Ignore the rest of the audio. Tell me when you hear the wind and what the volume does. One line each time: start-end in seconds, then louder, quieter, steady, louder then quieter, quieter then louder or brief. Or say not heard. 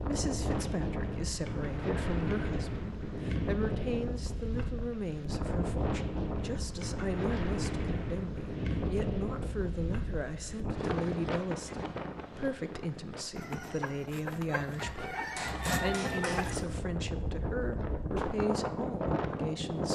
0.0-19.9 quieter then louder.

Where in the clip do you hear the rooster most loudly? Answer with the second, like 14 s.
16 s.